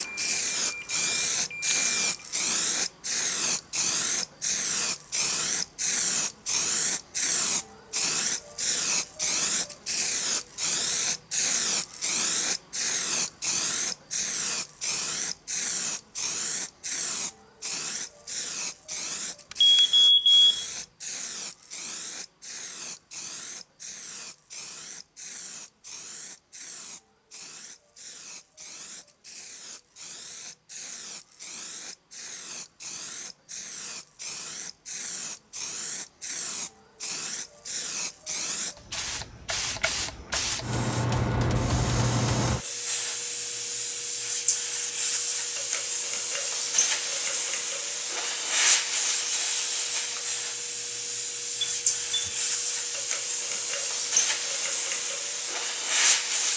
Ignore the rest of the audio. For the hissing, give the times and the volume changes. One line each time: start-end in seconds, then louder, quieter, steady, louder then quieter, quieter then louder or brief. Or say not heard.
0.0-56.5 quieter then louder.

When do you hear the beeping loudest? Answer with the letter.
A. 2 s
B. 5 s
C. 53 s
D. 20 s
D.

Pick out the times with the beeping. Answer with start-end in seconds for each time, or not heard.
0.0-2.0, 19.5-20.6, 51.6-52.4.